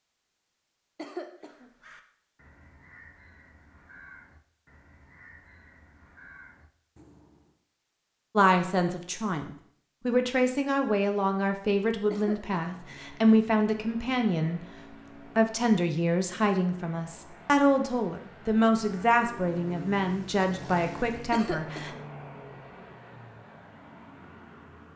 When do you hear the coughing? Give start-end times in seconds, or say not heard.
0.9-1.7, 12.1-12.6, 21.3-22.0.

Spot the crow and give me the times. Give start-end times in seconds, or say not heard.
1.4-7.6.